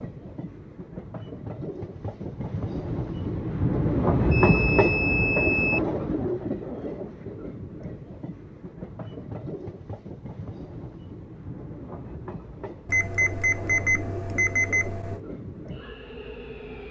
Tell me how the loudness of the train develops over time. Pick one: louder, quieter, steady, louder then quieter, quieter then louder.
louder then quieter.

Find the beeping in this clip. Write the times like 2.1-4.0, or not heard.
4.3-5.8, 12.8-15.2.